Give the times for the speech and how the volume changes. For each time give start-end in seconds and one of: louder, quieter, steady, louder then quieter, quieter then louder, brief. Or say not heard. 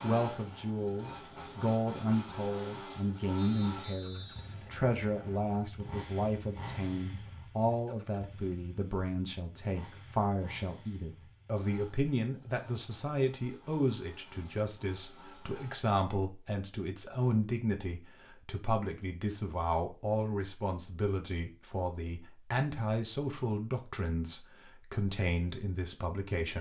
0.0-26.5 steady.